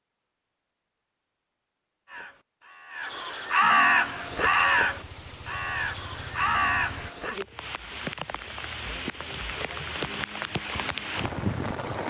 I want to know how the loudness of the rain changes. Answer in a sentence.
The volume of the rain goes up.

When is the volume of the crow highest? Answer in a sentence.
The loudest moment of the crow is at 4 seconds.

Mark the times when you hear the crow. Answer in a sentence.
You can hear the crow from 2.0 to 7.3 s.